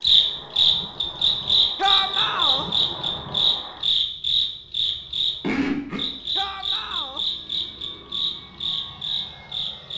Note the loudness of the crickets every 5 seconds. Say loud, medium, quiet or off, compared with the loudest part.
loud, medium.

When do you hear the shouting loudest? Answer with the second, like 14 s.
2 s.